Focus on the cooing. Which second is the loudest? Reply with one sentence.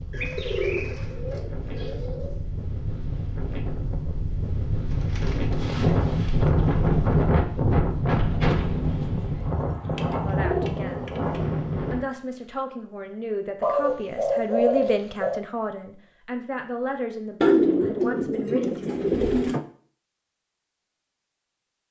The volume of the cooing peaks at 18 seconds.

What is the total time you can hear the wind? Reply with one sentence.
You can hear the wind for 12 seconds altogether.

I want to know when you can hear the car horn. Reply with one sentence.
You can't hear the car horn here.